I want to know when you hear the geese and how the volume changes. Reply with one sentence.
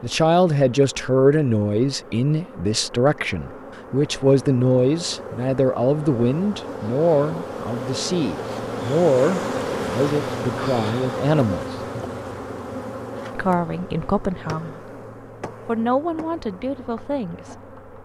The geese can't be heard in this clip.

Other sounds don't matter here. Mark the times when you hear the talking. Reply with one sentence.
The talking can be heard from 0.0 to 11.8 s, from 13.3 to 14.8 s and from 15.7 to 17.7 s.